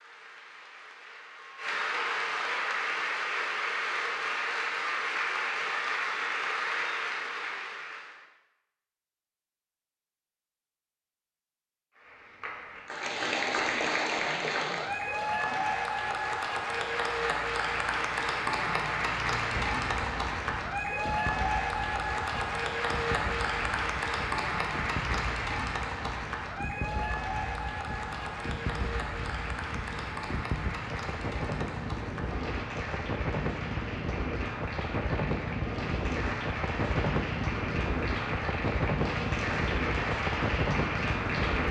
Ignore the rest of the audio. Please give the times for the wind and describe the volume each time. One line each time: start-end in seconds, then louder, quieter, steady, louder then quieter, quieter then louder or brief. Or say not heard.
19.4-41.6 louder.